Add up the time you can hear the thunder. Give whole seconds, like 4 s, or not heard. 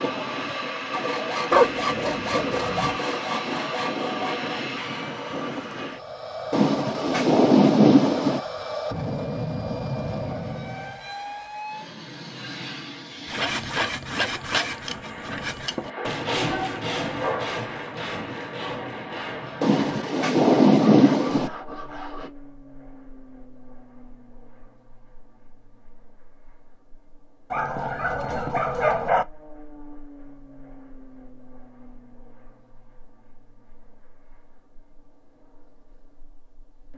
4 s.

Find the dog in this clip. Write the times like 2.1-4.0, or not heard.
1.5-3.0, 15.9-17.6, 27.5-29.2.